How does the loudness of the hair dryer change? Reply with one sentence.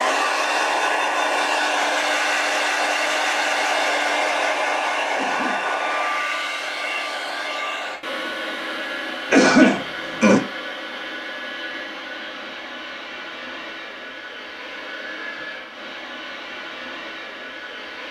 The loudness of the hair dryer goes down.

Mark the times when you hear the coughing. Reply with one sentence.
The coughing can be heard from 5.2 to 5.7 s and from 9.3 to 10.4 s.